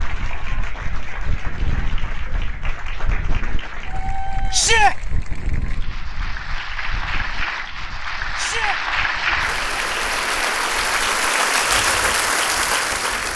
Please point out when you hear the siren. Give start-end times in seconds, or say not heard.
not heard.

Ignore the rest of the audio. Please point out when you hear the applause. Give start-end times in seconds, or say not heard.
0.0-13.3.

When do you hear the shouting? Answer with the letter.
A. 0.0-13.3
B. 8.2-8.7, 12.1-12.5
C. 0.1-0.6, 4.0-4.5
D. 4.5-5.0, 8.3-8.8
D.